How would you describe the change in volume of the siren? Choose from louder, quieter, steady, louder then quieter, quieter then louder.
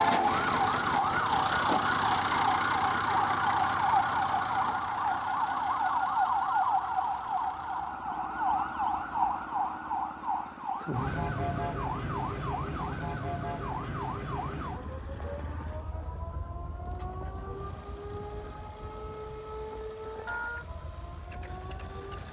quieter.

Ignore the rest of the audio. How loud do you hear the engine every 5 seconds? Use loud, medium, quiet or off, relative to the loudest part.
loud, quiet, quiet, quiet, quiet.